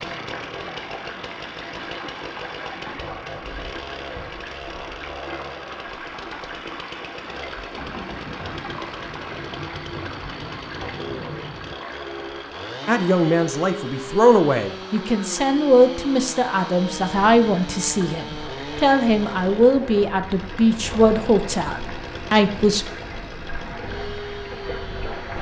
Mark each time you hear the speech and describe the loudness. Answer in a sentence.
The speech can be heard from 12.8 to 22.9 s, at a steady volume.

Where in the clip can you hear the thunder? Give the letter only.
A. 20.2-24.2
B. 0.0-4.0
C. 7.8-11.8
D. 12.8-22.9
C.